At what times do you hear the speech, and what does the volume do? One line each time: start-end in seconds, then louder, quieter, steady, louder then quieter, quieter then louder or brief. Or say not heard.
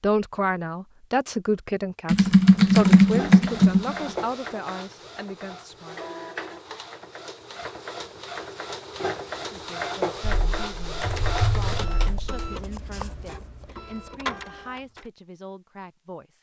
0.0-6.1 quieter
9.4-16.3 steady.